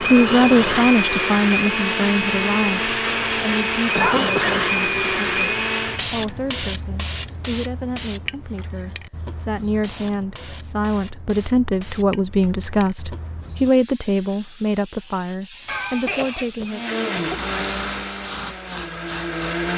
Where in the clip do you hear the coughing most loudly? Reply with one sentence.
The loudest moment of the coughing is at 4 seconds.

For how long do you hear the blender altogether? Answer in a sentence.
You can hear the blender for 9 seconds altogether.